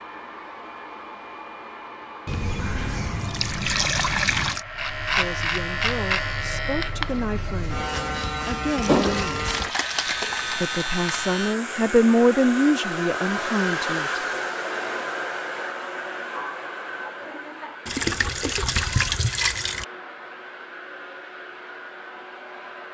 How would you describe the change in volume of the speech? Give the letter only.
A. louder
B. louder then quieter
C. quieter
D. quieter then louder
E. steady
B.